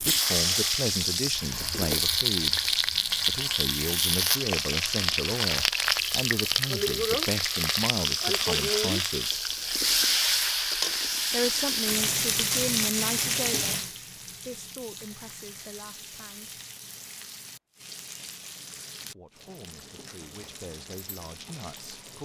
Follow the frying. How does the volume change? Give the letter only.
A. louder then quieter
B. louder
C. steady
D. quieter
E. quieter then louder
D.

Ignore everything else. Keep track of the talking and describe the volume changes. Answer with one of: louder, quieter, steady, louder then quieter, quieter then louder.
quieter.